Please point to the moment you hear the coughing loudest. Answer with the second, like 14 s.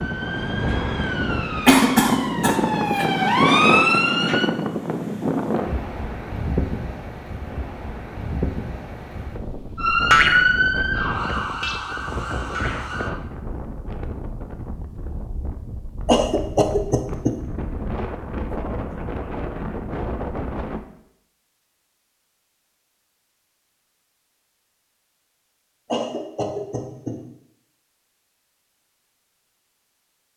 2 s.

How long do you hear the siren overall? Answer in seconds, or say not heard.
8 s.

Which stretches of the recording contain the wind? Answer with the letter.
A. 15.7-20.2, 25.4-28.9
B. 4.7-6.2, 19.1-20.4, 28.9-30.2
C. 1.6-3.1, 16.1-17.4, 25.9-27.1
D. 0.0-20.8
D.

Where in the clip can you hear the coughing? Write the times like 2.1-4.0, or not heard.
1.6-3.1, 16.1-17.4, 25.9-27.1.